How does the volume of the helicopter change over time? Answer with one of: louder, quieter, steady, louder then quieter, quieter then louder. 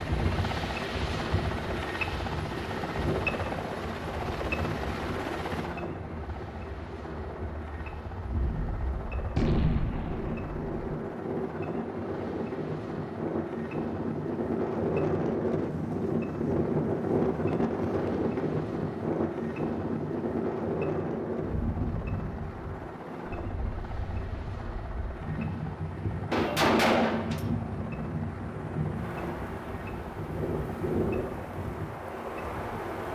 quieter.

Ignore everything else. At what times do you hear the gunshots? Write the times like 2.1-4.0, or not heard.
8.3-10.7, 26.3-27.5.